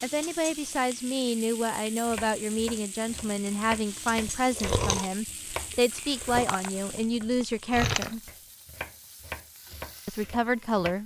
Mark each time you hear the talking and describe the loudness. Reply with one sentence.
The talking can be heard from 0.0 to 8.2 s, at a steady volume; and briefly from 10.1 to 11.0 s.